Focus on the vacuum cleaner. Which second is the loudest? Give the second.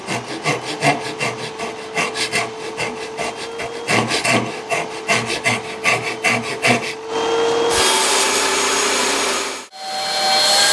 8 s.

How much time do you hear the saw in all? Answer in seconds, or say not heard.
7 s.